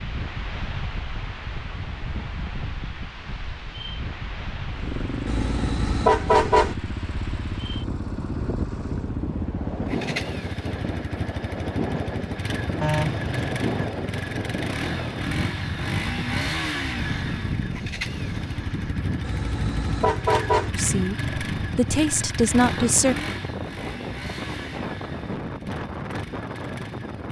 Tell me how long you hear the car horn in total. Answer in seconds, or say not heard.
4 s.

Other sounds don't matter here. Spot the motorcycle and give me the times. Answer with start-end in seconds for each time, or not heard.
4.7-27.2.